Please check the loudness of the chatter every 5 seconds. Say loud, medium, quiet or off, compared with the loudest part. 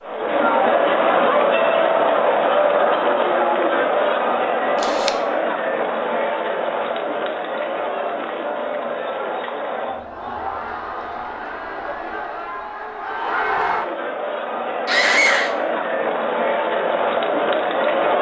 loud, medium, medium, loud.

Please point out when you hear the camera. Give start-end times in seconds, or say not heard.
4.8-5.2.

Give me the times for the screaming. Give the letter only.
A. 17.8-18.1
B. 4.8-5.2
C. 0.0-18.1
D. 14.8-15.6
D.